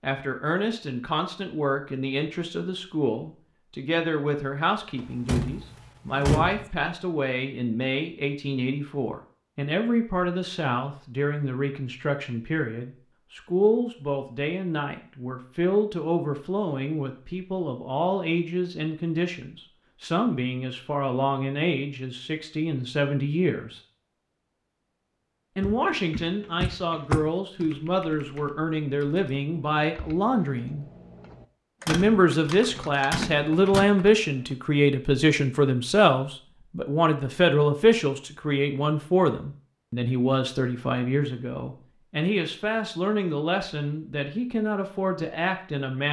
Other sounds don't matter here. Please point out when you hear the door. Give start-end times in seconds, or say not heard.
5.0-6.7, 25.6-27.7, 31.9-33.9.